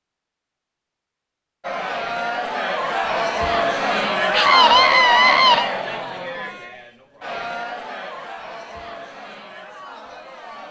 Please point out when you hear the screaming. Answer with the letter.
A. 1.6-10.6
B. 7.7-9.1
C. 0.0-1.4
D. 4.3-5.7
D.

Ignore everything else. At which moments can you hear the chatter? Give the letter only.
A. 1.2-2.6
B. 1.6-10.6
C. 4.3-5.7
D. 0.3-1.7
B.